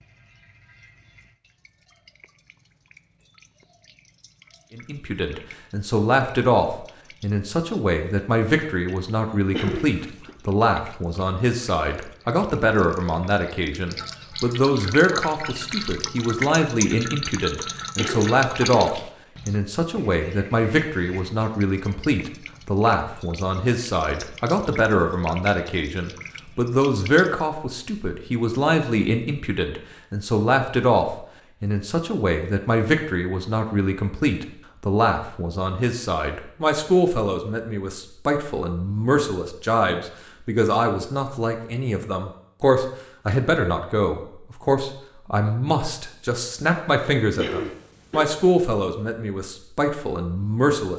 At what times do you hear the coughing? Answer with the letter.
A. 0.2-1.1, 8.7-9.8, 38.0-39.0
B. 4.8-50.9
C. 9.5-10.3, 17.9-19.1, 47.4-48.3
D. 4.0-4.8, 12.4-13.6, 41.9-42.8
C.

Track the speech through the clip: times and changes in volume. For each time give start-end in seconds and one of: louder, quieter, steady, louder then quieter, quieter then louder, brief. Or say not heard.
4.8-50.9 steady.